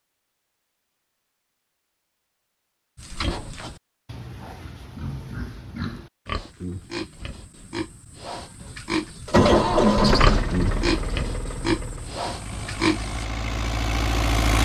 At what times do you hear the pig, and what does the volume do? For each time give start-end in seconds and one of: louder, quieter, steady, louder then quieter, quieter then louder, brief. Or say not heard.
3.0-13.2 louder.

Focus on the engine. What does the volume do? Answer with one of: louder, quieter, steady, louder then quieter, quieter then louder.
quieter then louder.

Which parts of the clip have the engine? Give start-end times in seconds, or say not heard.
9.2-14.6.